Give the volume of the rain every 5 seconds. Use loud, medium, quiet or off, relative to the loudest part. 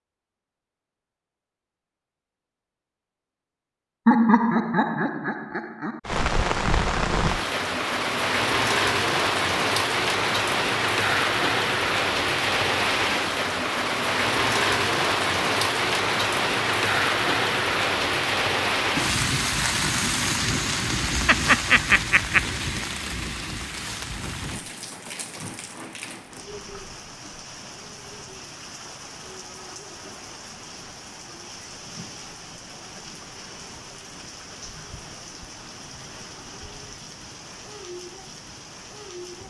off, loud, loud, loud, medium, quiet, quiet, quiet.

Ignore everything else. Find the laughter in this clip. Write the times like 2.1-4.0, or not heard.
4.0-6.0, 21.2-22.4.